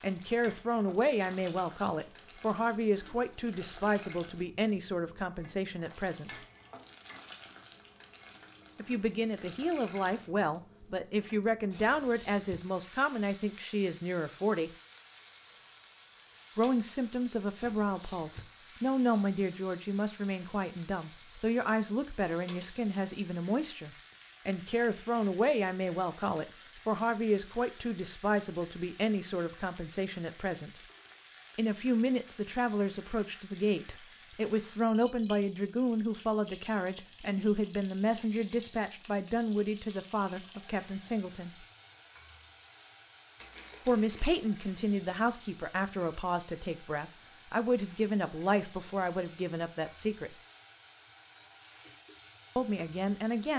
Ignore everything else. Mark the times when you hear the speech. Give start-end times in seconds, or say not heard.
0.0-6.3, 8.8-14.7, 16.6-30.8, 31.6-41.6, 43.9-50.4, 52.5-53.5.